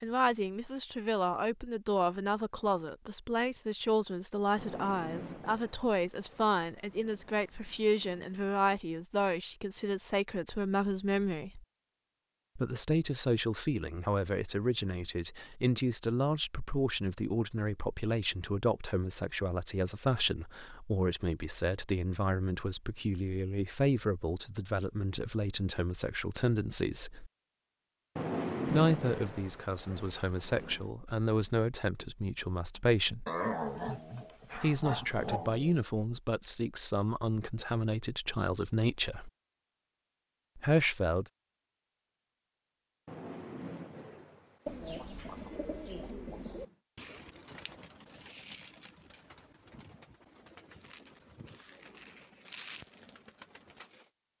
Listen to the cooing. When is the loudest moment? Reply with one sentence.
The volume of the cooing peaks at 45 seconds.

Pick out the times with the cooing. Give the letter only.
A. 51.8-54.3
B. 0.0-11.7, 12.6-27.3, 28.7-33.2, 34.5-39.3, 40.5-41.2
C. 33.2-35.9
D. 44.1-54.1
D.